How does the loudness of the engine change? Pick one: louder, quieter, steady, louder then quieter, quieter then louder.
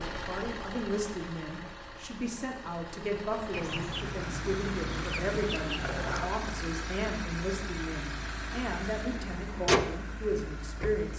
louder.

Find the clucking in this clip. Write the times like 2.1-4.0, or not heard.
3.5-6.3.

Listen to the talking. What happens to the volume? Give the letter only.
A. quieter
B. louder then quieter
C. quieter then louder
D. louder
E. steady
E.